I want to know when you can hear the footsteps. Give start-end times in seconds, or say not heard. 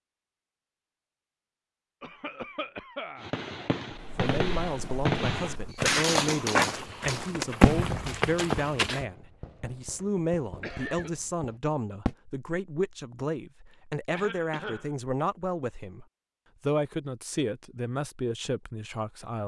3.9-9.1.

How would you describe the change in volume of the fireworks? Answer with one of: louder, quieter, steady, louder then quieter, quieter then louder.
louder then quieter.